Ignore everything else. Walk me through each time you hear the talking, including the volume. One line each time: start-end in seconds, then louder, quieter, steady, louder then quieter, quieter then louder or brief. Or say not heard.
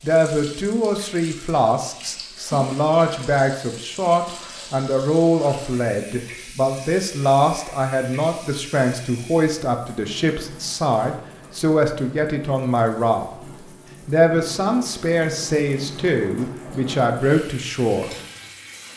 0.0-18.1 steady.